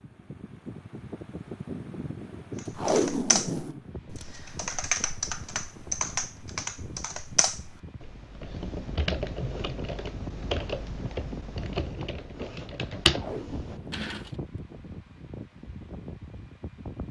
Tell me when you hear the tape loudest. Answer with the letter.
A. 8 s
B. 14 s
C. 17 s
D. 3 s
D.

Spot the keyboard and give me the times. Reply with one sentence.
The keyboard can be heard from 2.5 to 14.3 s.